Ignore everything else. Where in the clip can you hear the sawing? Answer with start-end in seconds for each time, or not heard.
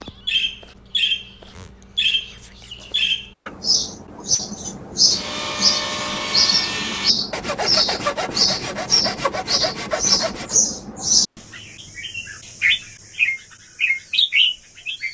5.1-10.6.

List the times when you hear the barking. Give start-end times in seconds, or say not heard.
not heard.